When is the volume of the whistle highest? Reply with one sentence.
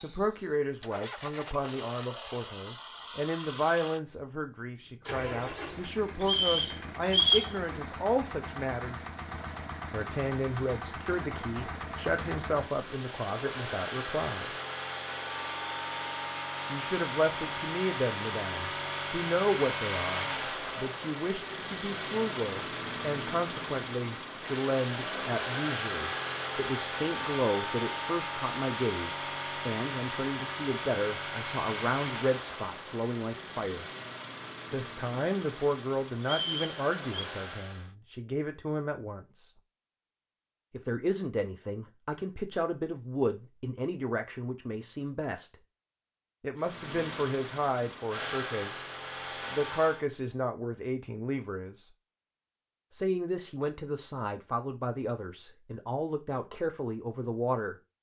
The loudest moment of the whistle is at 7 seconds.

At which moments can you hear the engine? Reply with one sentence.
The engine can be heard from 0.0 to 38.0 s and from 46.6 to 50.0 s.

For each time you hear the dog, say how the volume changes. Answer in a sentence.
You can't hear the dog here.